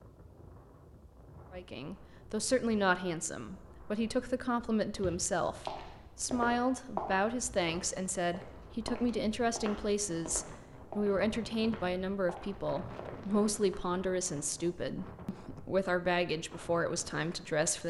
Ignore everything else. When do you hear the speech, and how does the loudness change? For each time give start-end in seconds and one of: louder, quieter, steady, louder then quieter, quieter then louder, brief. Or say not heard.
1.5-17.8 steady.